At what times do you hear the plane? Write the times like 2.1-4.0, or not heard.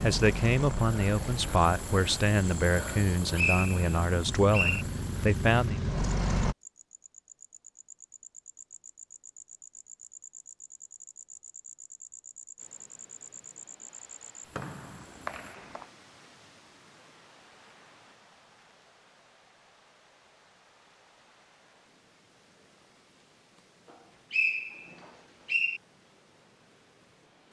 0.0-6.5.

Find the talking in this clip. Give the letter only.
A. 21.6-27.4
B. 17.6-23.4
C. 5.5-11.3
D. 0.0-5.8
D.